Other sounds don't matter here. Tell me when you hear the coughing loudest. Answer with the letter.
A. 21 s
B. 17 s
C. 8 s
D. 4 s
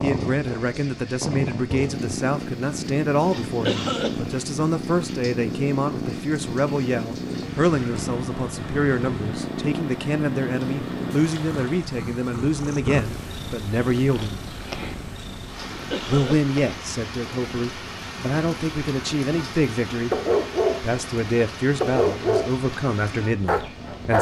D.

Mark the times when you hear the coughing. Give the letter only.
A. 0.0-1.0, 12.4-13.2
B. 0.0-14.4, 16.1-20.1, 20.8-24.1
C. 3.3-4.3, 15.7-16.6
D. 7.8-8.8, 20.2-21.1
C.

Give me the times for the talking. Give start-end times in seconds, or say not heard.
0.0-14.4, 16.1-20.1, 20.8-24.1.